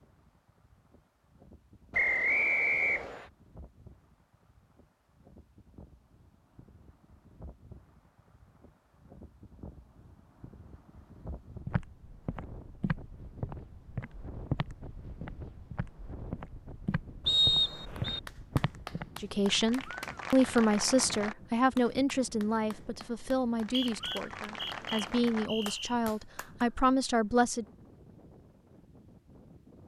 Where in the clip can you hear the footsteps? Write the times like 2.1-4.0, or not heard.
11.7-19.1.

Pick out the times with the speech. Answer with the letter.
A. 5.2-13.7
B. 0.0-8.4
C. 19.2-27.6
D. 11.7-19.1
C.